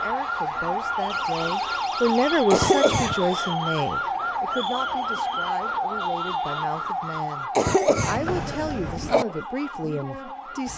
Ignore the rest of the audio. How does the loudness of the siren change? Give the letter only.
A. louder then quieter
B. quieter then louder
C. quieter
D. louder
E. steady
C.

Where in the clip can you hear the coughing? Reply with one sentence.
The coughing can be heard from 2.5 to 3.5 s and from 7.5 to 9.2 s.